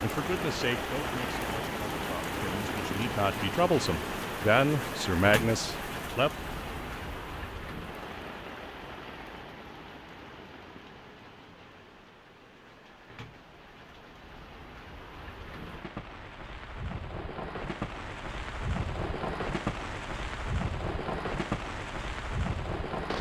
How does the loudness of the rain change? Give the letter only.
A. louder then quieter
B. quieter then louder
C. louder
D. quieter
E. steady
B.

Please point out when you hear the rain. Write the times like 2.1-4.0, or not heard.
0.0-23.1.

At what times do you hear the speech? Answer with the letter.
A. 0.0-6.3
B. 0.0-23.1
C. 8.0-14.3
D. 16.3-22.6
A.